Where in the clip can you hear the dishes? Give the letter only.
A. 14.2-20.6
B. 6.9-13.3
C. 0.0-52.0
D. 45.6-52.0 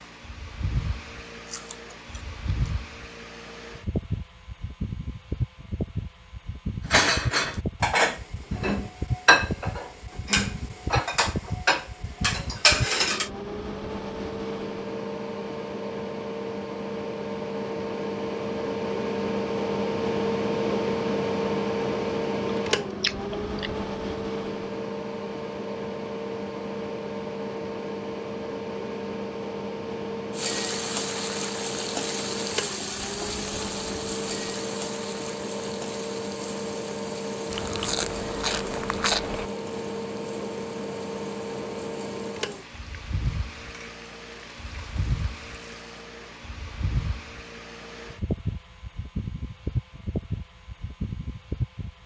B.